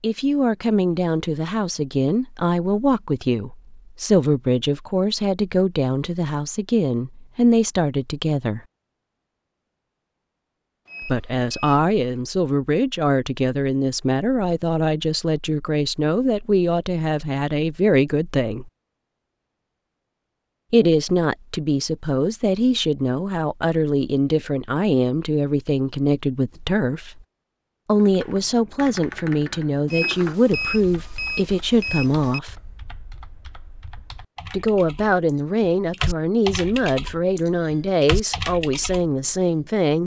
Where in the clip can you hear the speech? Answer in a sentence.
You can hear the speech from 0.0 to 8.6 s, from 11.0 to 18.7 s, from 20.7 to 27.2 s, from 27.9 to 32.5 s and from 34.5 to 40.0 s.